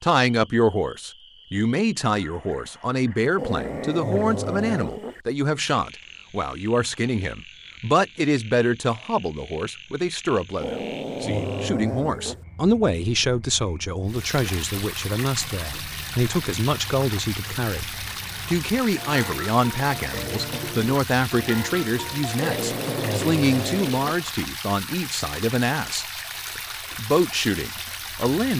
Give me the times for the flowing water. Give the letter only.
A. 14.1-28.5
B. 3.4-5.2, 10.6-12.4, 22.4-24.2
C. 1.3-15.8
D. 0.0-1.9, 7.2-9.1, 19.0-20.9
A.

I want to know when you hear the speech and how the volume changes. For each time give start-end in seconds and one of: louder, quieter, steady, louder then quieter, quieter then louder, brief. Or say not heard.
0.0-28.5 steady.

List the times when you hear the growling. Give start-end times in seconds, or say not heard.
3.4-5.2, 10.6-12.4, 22.4-24.2.